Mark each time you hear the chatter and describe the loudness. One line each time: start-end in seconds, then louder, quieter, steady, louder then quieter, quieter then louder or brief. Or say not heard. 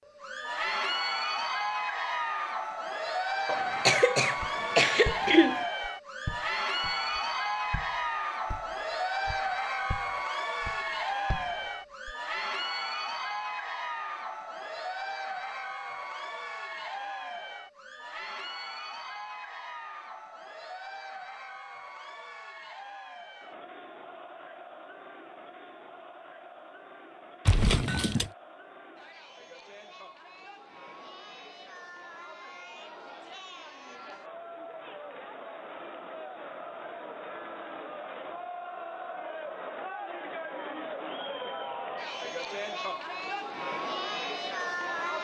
0.0-45.2 quieter then louder.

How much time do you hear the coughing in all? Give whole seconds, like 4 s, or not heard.
3 s.